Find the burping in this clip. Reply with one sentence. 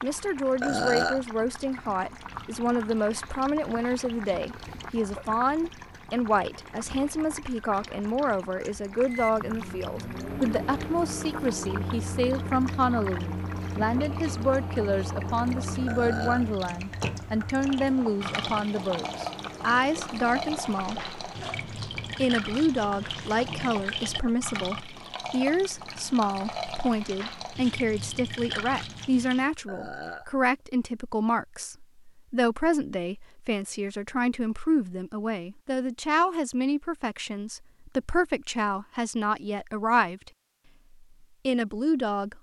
You can hear the burping from 0.6 to 1.2 s, from 15.8 to 16.4 s and from 29.6 to 30.3 s.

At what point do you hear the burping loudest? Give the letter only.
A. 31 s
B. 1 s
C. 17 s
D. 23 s
B.